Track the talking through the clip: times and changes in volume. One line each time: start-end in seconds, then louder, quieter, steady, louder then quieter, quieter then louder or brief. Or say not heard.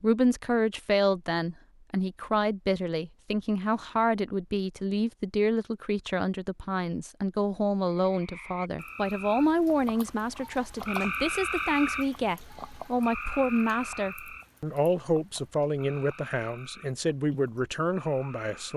0.0-18.7 steady.